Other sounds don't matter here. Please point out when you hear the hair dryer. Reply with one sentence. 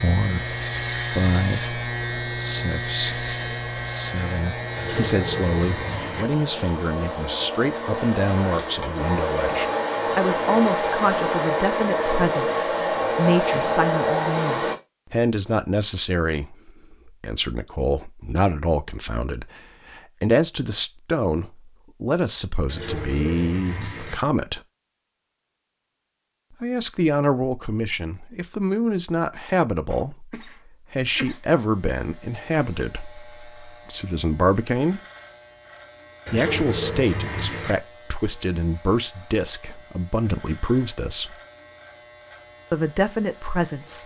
You can hear the hair dryer from 0.2 to 14.8 s.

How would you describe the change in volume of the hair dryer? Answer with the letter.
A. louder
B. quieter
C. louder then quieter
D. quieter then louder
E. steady
A.